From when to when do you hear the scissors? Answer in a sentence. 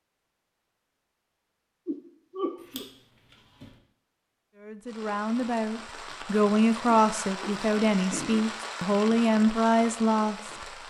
The scissors can be heard from 2.5 to 3.8 s.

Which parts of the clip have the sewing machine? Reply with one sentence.
The sewing machine can't be heard in this clip.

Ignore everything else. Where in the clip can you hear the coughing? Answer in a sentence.
The coughing can be heard from 1.9 to 2.9 s and from 6.8 to 8.4 s.